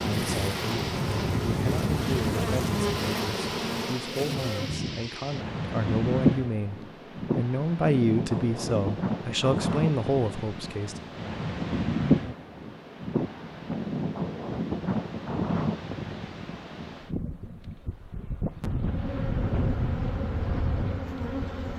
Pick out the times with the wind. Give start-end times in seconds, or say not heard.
0.0-21.7.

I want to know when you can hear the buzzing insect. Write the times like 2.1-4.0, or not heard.
0.0-4.8, 18.8-21.7.